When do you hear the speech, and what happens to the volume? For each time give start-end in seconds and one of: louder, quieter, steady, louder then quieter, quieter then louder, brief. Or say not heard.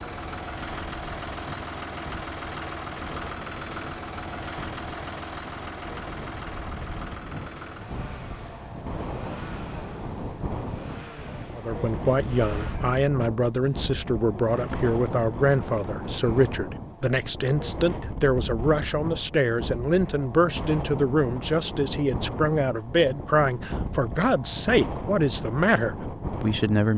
11.6-26.9 steady.